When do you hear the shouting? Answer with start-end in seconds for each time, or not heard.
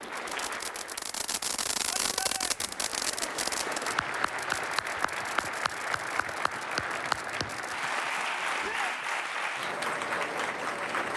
1.9-2.8, 8.6-9.0.